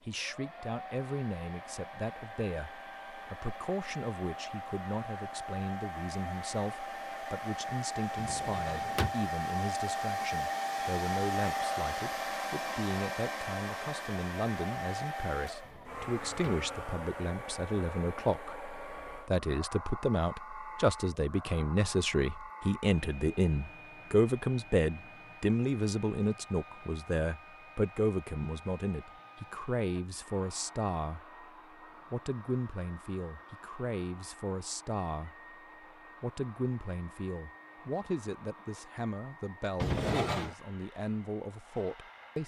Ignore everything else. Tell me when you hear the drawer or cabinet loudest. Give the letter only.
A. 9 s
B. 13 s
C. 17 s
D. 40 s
D.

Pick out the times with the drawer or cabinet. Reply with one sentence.
The drawer or cabinet can be heard from 8.2 to 9.2 s, from 15.6 to 16.7 s and from 39.8 to 40.5 s.